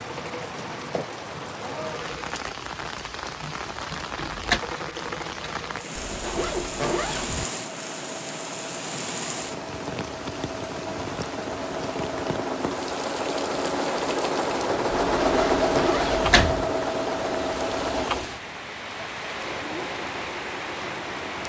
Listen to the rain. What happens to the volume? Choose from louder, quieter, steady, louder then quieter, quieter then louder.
steady.